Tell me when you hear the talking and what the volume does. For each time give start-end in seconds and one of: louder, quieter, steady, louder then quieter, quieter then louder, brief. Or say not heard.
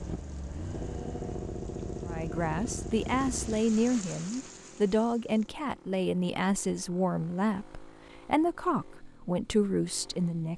2.0-10.5 steady.